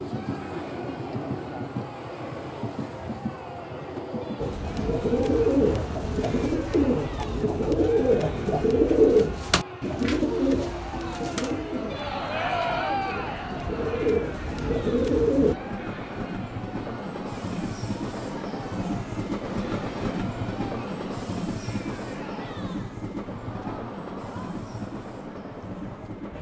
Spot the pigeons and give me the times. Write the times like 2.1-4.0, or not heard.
4.3-15.6.